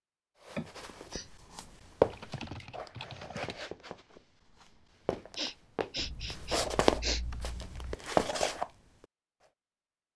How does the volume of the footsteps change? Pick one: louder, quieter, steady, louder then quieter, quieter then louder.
quieter then louder.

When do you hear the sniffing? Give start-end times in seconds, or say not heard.
0.5-1.3, 5.3-7.2.